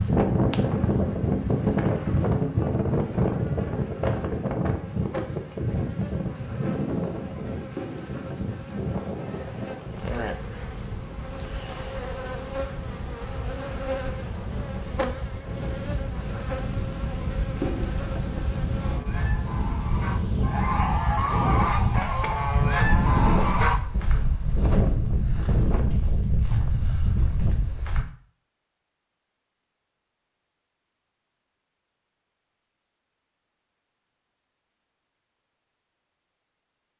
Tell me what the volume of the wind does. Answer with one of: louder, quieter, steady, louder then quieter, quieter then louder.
quieter then louder.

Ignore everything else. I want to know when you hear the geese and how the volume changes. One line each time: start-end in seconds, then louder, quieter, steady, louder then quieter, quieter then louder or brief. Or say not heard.
18.8-24.2 louder.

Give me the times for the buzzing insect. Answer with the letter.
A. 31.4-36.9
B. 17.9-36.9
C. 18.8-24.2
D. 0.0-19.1
D.